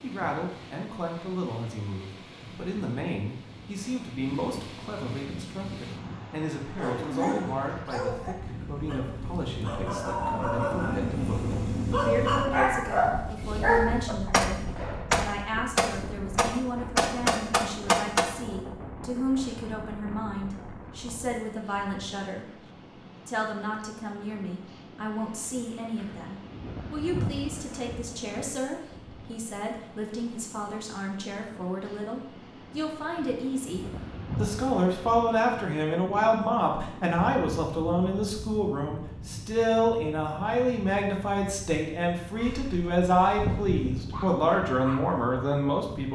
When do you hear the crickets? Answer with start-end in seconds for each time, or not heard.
not heard.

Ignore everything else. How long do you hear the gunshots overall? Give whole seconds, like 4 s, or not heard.
4 s.